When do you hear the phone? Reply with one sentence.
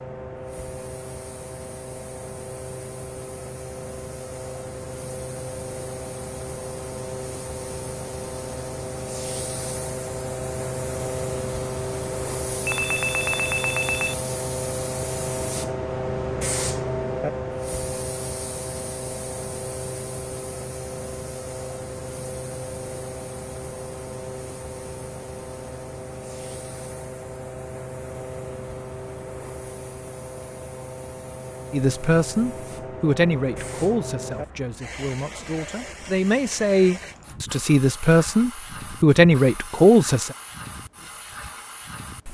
You can hear the phone from 12.7 to 14.2 s.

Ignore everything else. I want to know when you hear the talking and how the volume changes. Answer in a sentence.
You can hear the talking from 31.7 to 40.4 s, getting quieter then louder.